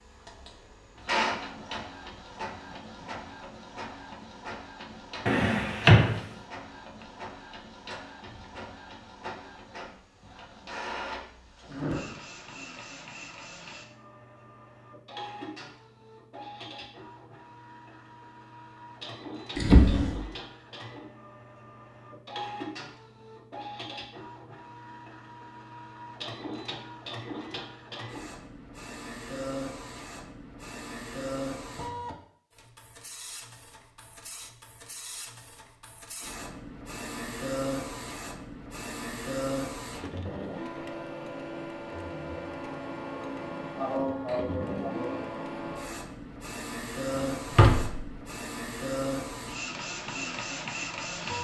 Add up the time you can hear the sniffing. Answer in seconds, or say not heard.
2 s.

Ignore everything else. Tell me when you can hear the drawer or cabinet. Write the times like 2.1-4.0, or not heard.
5.2-6.2, 19.6-20.1, 47.1-48.0.